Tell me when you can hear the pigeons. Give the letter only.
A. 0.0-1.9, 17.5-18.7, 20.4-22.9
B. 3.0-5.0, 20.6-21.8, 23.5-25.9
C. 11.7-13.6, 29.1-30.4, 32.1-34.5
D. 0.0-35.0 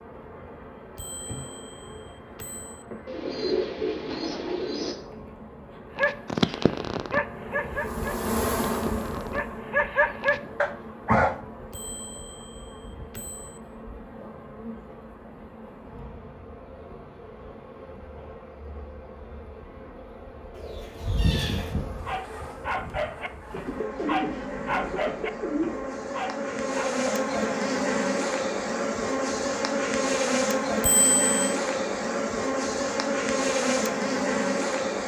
B.